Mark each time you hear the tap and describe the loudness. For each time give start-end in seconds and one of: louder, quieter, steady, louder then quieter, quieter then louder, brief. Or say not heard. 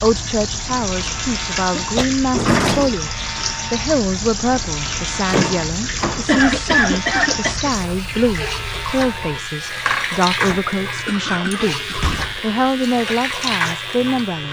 0.0-14.4 steady.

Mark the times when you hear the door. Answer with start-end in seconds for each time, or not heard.
2.3-3.0, 5.2-7.3, 11.9-12.4.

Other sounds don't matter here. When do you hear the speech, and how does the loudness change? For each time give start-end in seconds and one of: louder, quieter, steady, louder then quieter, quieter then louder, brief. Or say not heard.
0.0-14.4 steady.